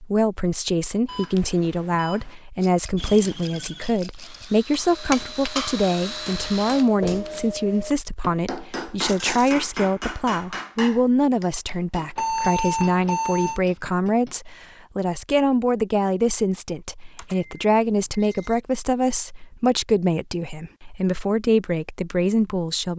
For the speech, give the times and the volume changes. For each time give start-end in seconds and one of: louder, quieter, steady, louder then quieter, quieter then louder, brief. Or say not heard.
0.0-22.9 steady.